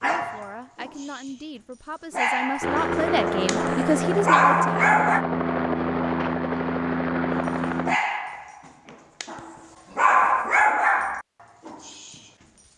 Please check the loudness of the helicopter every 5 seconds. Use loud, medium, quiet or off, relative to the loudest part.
loud, loud, off.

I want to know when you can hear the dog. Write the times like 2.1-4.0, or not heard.
0.0-5.2, 7.5-12.7.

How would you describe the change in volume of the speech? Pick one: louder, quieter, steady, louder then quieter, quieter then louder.
louder.